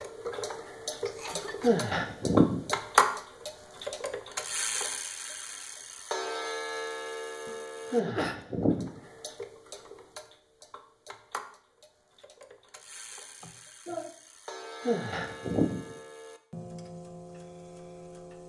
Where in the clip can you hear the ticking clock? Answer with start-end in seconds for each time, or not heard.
0.0-18.4.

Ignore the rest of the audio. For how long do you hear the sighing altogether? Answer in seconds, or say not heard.
3 s.